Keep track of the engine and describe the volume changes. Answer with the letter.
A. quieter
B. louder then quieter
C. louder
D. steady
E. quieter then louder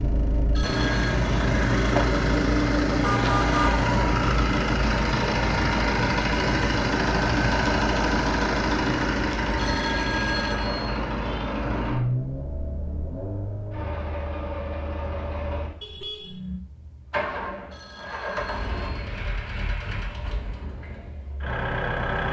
A.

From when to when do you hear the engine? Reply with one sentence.
You can hear the engine from 0.0 to 22.2 s.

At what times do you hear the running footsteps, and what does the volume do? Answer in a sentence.
You can't hear the running footsteps here.